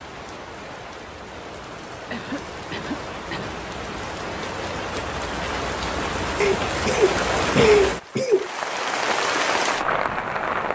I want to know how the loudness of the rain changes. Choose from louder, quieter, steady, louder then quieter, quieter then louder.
louder.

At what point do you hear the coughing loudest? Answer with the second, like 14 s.
8 s.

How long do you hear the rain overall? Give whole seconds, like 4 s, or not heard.
11 s.